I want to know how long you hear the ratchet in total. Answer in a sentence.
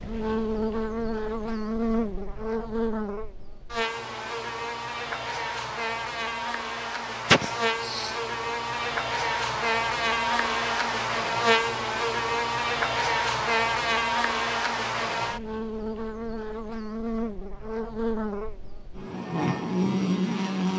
The ratchet can't be heard in this clip.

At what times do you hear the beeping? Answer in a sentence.
The beeping can't be heard in this clip.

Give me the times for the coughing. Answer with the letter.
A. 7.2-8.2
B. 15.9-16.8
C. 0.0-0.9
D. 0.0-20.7
A.